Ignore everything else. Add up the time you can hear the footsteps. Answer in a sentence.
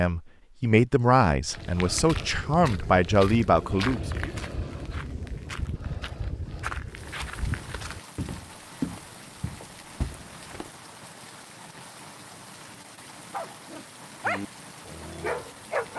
You can hear the footsteps for 9 seconds altogether.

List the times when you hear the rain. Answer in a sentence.
You can hear the rain from 6.8 to 15.9 s.